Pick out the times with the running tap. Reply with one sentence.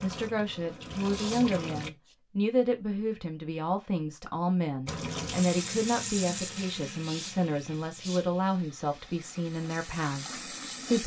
You can hear the running tap from 0.0 to 1.9 s and from 4.8 to 11.0 s.